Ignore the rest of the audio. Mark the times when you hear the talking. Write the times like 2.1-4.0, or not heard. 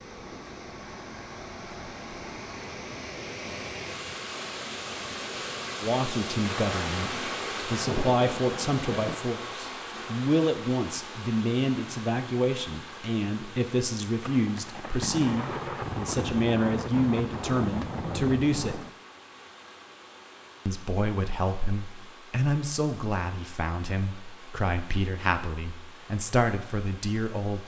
5.8-18.9, 20.6-27.6.